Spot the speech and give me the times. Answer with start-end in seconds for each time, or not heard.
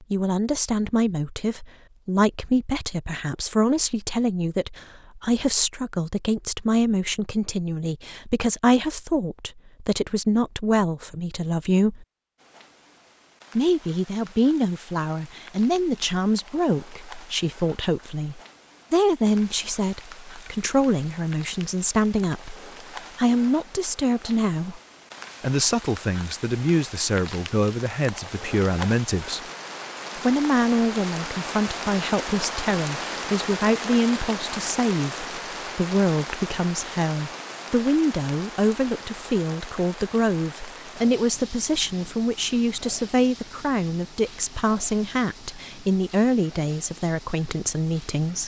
0.0-12.1, 13.6-22.6, 23.1-24.8, 25.4-29.4, 30.1-48.4.